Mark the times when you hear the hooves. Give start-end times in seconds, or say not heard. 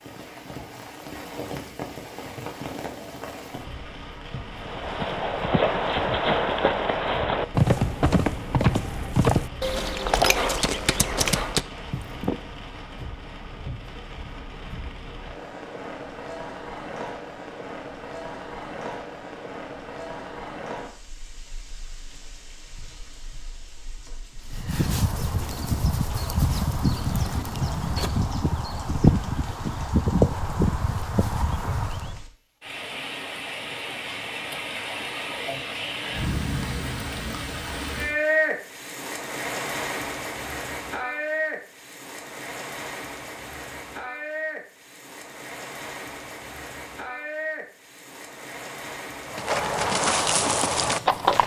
4.5-12.4, 24.5-32.2, 49.2-51.4.